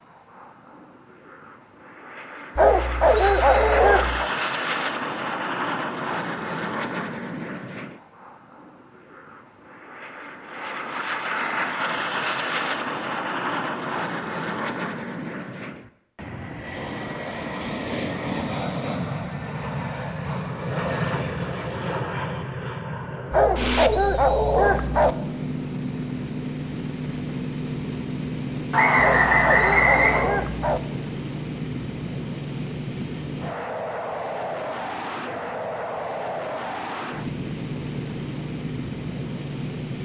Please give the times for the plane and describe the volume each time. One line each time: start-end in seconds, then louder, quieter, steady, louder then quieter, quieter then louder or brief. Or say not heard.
0.0-40.0 steady.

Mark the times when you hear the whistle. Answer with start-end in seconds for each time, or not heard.
28.7-30.2.